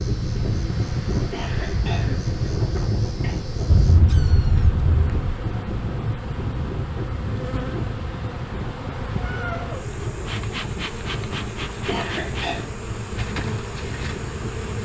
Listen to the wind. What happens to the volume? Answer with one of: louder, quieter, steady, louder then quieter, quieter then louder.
quieter.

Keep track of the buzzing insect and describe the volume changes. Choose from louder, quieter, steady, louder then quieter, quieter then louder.
louder.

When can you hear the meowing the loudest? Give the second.
4 s.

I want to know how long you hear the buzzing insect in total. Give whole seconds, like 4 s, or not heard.
15 s.